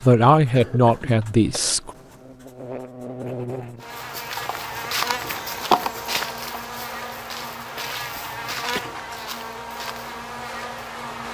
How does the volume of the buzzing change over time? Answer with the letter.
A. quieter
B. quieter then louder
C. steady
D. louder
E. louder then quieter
C.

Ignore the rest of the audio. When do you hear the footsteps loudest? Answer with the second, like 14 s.
6 s.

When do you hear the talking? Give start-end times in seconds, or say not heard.
0.0-1.9.